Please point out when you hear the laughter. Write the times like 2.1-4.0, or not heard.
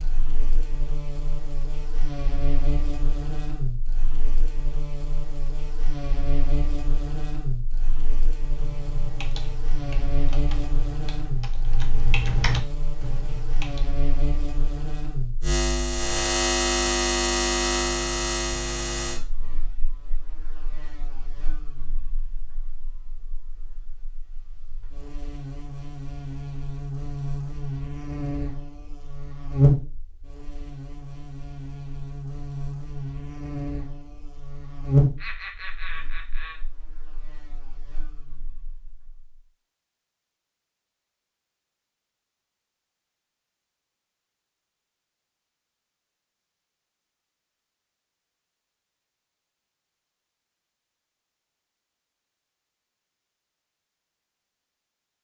35.1-36.6.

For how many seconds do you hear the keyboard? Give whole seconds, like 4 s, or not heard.
5 s.